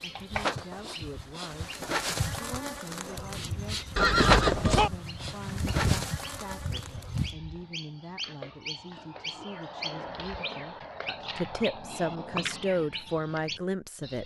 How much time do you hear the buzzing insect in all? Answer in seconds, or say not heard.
7 s.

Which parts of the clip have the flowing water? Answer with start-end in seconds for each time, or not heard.
not heard.